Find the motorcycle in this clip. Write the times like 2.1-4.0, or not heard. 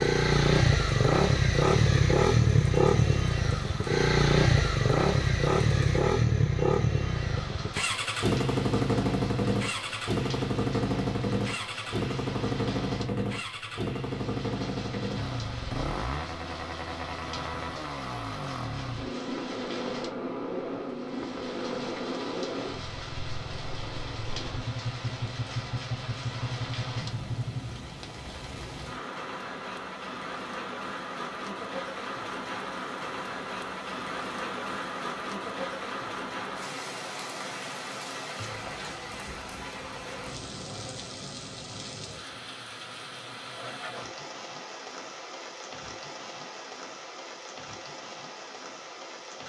0.0-27.7.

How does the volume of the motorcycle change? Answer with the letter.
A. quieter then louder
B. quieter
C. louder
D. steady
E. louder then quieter
B.